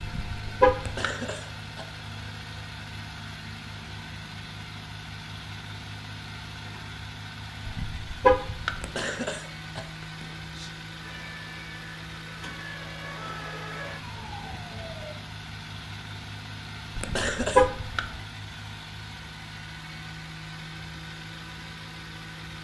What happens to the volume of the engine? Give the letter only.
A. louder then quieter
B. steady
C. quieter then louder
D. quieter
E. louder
B.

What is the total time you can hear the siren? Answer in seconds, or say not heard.
4 s.